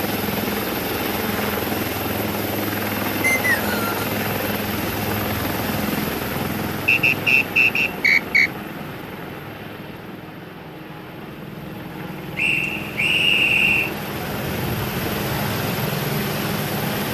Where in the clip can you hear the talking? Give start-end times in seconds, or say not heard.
not heard.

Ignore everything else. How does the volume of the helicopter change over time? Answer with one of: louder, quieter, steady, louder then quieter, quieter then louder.
quieter then louder.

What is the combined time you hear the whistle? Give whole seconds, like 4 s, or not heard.
4 s.